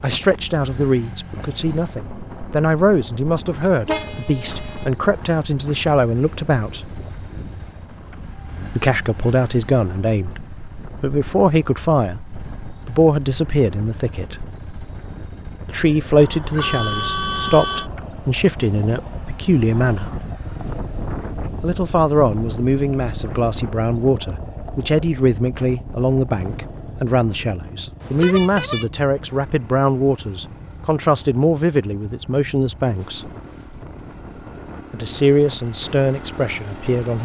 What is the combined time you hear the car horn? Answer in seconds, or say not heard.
4 s.